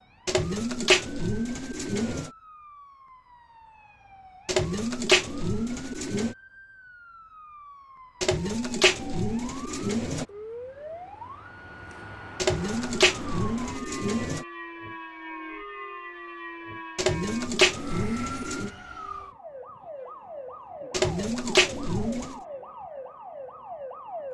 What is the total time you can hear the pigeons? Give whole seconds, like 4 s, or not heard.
11 s.